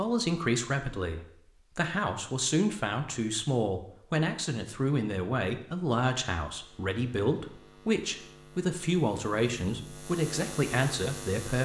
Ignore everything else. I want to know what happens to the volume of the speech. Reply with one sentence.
The loudness of the speech stays about the same.